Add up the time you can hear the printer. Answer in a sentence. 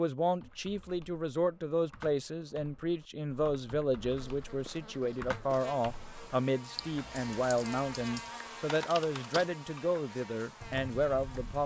You can't hear the printer here.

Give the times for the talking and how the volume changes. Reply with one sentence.
You can hear the talking from 0.0 to 11.6 s, at a steady volume.